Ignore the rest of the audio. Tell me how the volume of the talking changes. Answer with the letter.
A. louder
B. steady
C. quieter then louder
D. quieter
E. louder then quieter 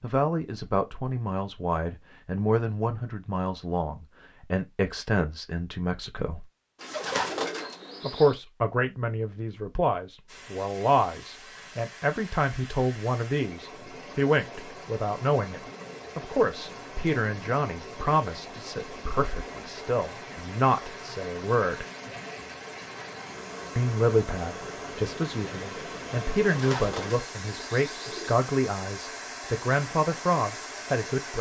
B.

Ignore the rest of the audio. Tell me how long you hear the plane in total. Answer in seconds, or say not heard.
not heard.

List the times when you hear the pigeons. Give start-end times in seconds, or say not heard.
6.8-8.4, 26.4-28.4.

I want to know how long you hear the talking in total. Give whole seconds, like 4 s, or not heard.
28 s.